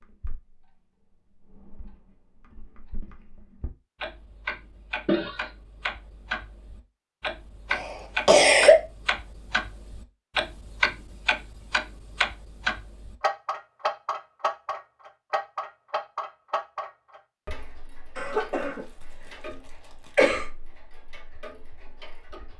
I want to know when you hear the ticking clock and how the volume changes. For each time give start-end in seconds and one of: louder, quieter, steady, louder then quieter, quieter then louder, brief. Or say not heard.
0.0-22.5 louder then quieter.